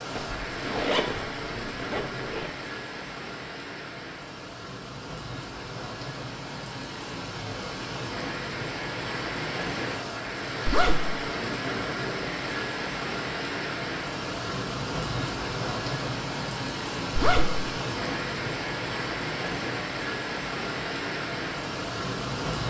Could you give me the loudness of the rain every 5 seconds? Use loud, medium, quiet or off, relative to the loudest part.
medium, loud, loud, loud, loud.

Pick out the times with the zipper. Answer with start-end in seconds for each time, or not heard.
0.1-2.5, 10.7-11.2, 17.1-17.6.